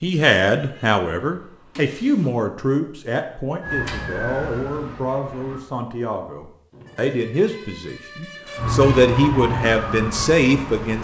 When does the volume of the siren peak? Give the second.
9 s.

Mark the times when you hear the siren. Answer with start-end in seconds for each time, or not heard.
3.6-5.6, 8.6-10.9.